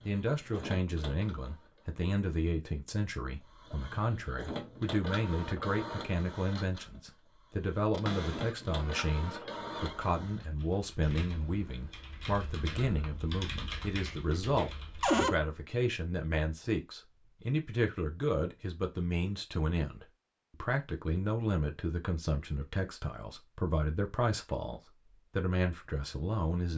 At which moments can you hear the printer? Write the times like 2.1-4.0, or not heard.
0.0-2.0, 3.5-10.4.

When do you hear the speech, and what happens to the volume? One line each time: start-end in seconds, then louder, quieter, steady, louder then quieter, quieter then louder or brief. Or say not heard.
0.1-26.7 steady.